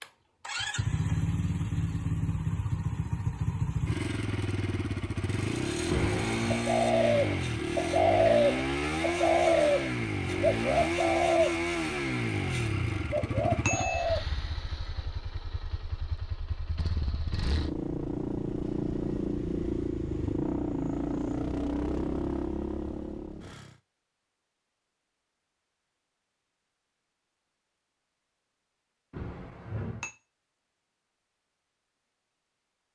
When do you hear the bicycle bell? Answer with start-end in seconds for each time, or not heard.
5.8-6.6, 12.8-14.1, 29.1-30.1.